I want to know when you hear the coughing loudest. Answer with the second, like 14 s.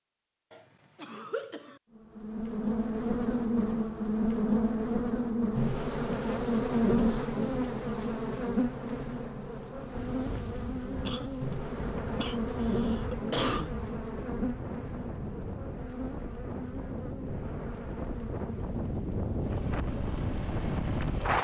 13 s.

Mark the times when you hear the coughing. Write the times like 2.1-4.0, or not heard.
0.5-1.8, 11.1-13.8.